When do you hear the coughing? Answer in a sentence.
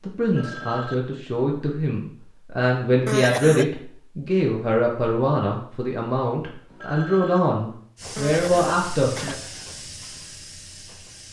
You can hear the coughing from 3.0 to 3.6 s and from 8.2 to 9.4 s.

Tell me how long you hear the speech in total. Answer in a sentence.
You can hear the speech for 9 seconds altogether.